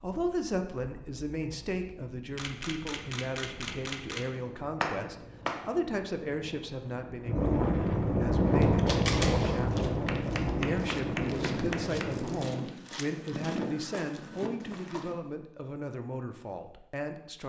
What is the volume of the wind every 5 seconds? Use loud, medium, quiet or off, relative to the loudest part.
quiet, loud, loud, off.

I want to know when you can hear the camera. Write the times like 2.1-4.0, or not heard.
2.4-4.3, 8.8-9.6, 12.1-13.1.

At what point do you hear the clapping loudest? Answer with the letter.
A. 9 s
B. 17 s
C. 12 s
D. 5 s
D.